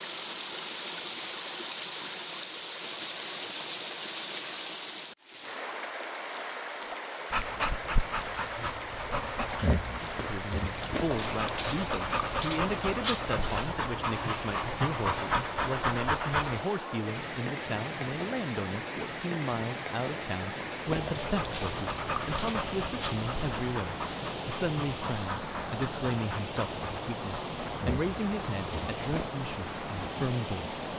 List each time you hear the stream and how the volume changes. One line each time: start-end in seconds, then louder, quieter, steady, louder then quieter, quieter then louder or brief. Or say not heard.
0.0-30.9 steady.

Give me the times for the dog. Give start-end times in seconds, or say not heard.
6.9-16.6, 20.9-29.3.